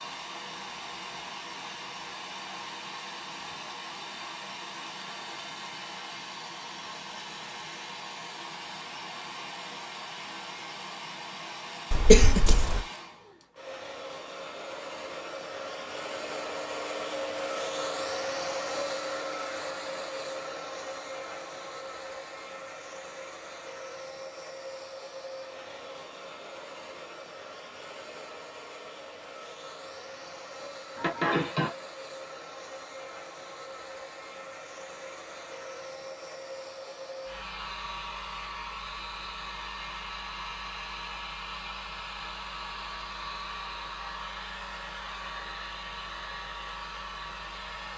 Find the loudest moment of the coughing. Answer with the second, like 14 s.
12 s.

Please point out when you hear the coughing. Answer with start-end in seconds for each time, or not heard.
11.9-12.8, 30.9-31.7.